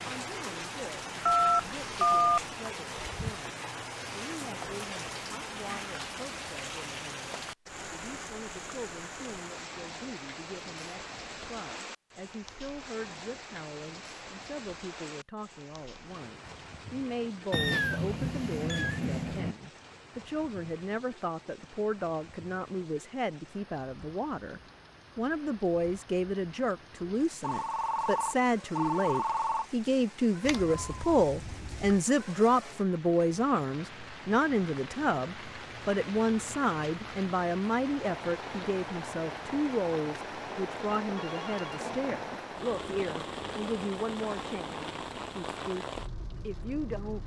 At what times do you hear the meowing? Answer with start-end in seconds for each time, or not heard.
17.5-19.6, 30.4-32.0.